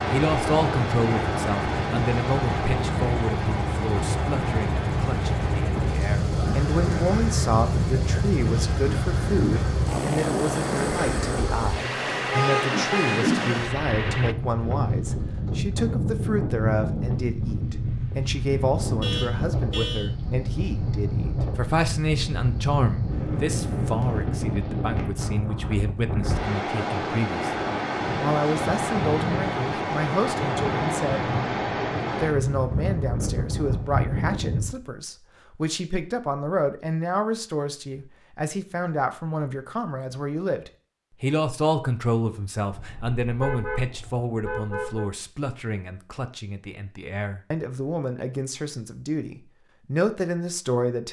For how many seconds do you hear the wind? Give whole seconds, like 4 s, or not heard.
35 s.